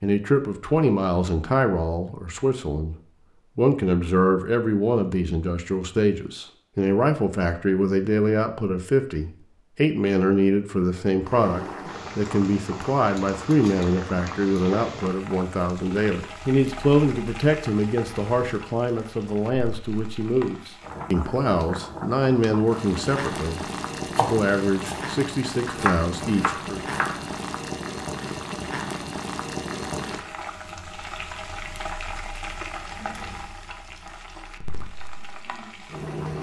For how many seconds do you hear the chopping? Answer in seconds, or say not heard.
3 s.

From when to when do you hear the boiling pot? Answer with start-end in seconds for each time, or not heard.
11.2-36.3.